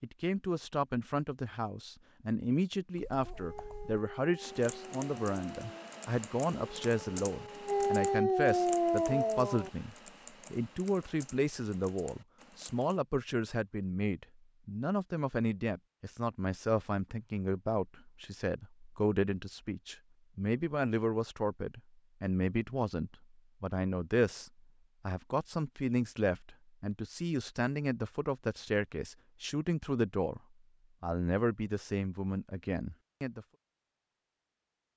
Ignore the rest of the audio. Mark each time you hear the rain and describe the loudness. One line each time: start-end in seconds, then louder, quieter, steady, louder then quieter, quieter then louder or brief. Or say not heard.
not heard.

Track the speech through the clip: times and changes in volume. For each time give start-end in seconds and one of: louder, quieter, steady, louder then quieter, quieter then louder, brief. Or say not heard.
0.0-30.4 steady
31.0-33.5 brief.